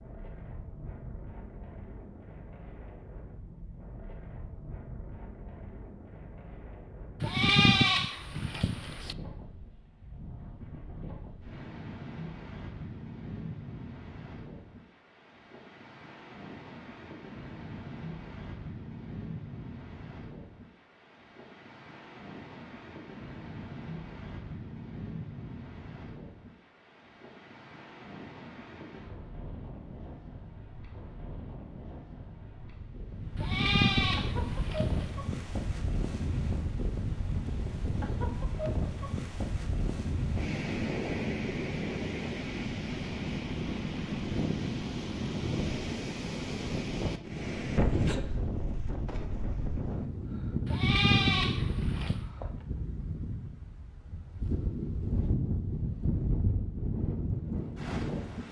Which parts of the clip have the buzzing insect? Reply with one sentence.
The buzzing insect can't be heard in this clip.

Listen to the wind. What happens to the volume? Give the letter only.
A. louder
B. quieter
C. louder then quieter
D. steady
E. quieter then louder
A.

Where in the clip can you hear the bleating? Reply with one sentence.
The bleating can be heard from 7.2 to 9.2 s, from 33.4 to 35.1 s and from 50.6 to 52.2 s.